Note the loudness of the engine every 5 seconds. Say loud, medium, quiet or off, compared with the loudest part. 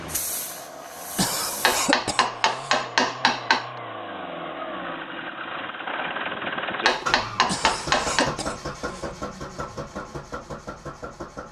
medium, loud, medium.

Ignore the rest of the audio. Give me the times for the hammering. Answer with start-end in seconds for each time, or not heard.
1.6-3.6, 6.8-8.3.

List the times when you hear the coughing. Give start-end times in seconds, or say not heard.
1.1-2.8, 7.5-9.1.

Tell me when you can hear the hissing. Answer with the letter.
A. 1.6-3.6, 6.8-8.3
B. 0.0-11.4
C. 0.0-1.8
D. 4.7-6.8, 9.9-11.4
C.